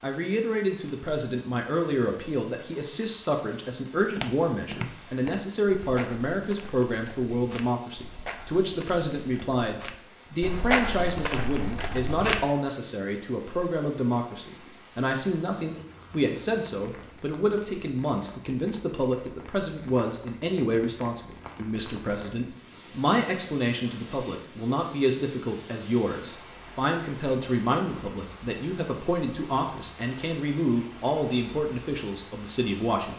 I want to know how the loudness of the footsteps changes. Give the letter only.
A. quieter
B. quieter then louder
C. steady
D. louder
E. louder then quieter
B.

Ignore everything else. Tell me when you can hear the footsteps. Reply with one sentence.
You can hear the footsteps from 4.0 to 12.4 s.